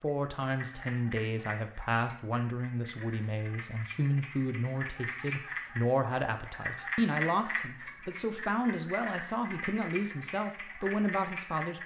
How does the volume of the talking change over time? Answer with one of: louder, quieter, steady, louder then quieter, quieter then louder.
steady.